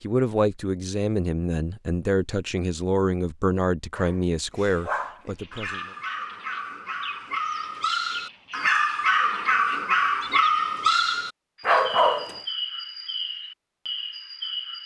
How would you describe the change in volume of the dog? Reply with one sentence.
The volume of the dog goes up.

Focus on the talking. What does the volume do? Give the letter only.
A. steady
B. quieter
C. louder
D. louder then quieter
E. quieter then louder
A.